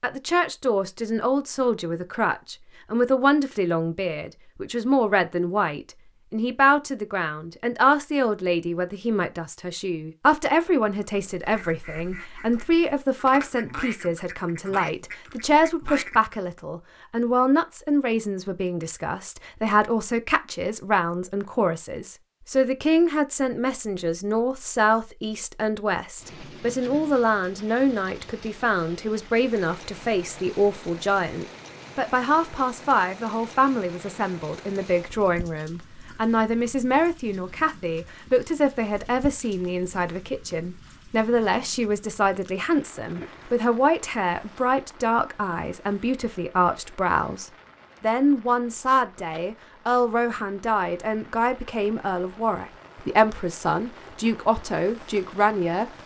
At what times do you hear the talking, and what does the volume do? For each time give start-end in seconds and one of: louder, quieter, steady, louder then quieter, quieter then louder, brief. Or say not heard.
0.0-56.0 steady.